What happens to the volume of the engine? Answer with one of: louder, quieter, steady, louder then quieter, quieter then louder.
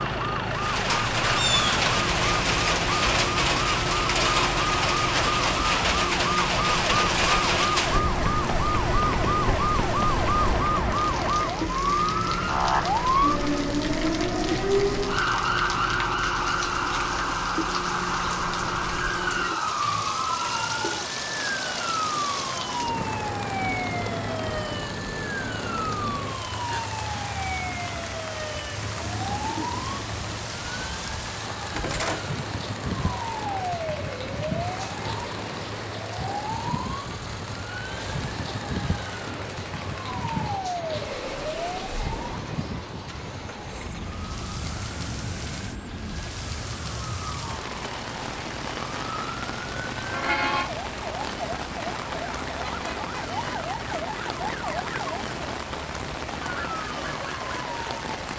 quieter.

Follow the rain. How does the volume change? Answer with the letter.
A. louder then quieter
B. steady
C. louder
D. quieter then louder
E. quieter
E.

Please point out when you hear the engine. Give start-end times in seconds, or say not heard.
0.0-58.3.